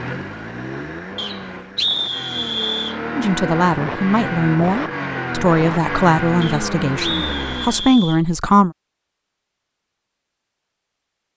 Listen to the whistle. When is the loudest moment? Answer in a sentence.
The loudest moment of the whistle is at 2 seconds.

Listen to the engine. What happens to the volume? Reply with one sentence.
The loudness of the engine goes up.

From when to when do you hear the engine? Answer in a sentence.
The engine can be heard from 0.0 to 8.0 s.